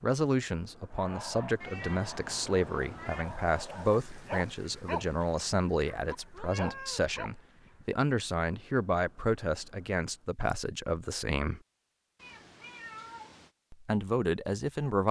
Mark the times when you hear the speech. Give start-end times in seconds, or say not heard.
0.0-11.6, 13.7-15.0.